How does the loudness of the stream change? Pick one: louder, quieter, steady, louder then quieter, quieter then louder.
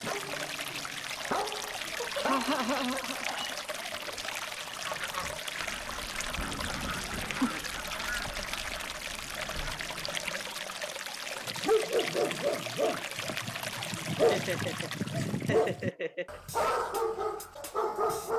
steady.